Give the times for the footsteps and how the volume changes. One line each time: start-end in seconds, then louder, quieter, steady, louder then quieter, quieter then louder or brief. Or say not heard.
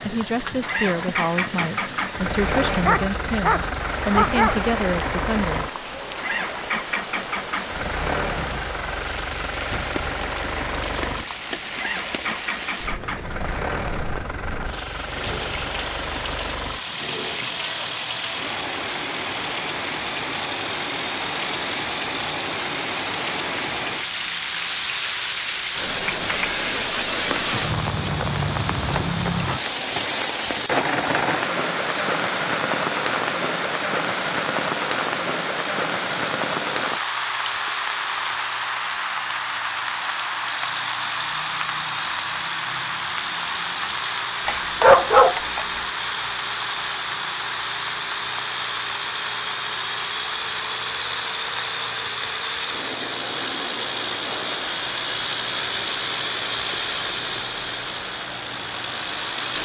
not heard.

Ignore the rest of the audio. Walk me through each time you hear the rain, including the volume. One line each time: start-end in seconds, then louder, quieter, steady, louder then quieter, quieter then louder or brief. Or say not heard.
0.0-59.6 louder then quieter.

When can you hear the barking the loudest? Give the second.
45 s.